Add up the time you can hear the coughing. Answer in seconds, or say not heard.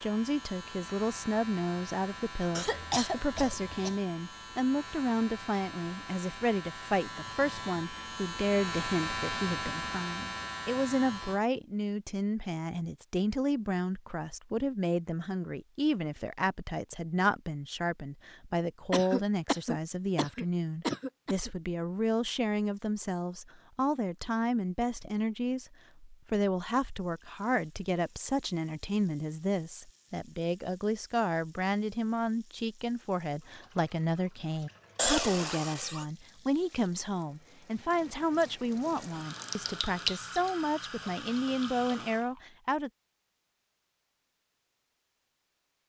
5 s.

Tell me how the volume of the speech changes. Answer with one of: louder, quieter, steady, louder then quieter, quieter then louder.
steady.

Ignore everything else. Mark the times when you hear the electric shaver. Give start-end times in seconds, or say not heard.
0.0-11.4.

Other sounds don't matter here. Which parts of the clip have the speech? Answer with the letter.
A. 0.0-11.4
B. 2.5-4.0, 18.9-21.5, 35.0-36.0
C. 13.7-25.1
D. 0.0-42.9
D.